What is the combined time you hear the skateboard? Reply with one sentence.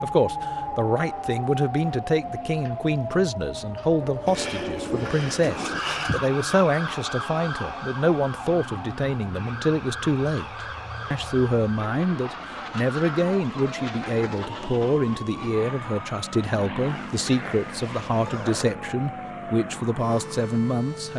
You can't hear the skateboard here.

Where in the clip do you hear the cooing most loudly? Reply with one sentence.
The loudest moment of the cooing is at 6 seconds.